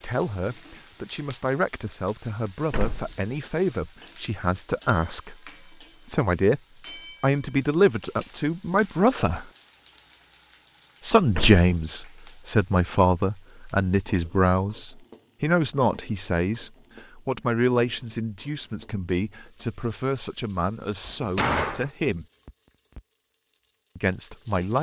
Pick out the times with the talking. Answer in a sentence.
The talking can be heard from 0.0 to 6.6 s, from 7.2 to 9.4 s, from 11.0 to 22.2 s and from 23.9 to 24.7 s.